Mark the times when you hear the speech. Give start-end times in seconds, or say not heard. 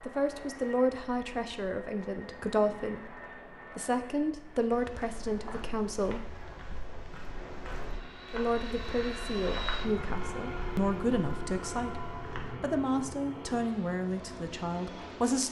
0.0-6.4, 8.3-15.4.